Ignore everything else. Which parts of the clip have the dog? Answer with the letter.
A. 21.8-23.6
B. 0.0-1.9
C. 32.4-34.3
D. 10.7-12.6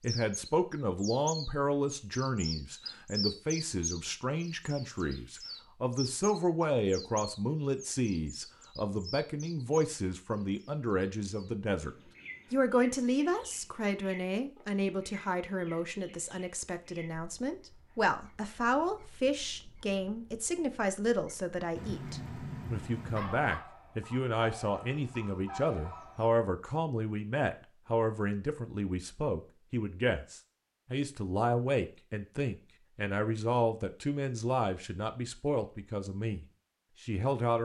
A.